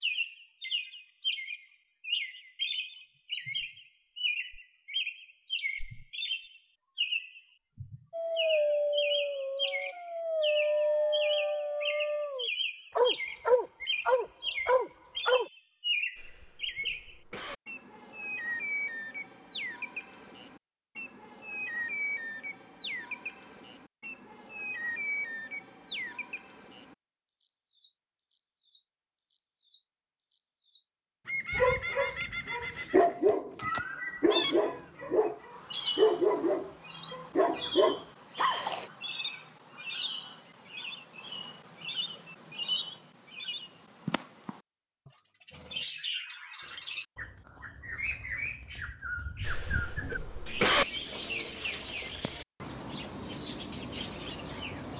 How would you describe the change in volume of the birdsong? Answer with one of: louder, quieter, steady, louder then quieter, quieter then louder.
steady.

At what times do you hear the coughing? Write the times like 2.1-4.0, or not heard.
16.1-17.6, 49.5-50.9.